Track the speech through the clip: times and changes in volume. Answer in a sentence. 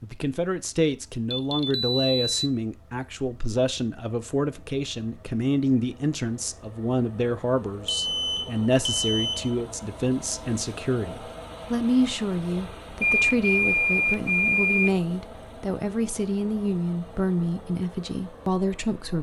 You can hear the speech from 0.0 to 19.1 s, at a steady volume.